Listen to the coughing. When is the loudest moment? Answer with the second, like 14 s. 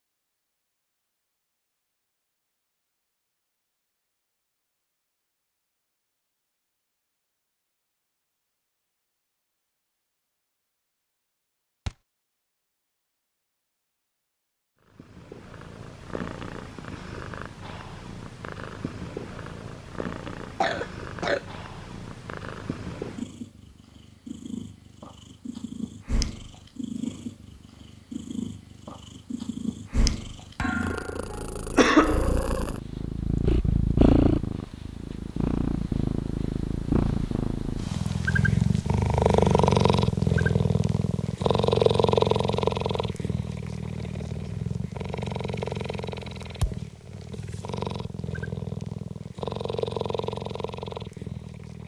32 s.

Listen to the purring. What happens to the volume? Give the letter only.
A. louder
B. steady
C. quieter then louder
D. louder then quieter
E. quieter
D.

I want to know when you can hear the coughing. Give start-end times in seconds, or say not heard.
20.2-21.4, 31.8-32.4.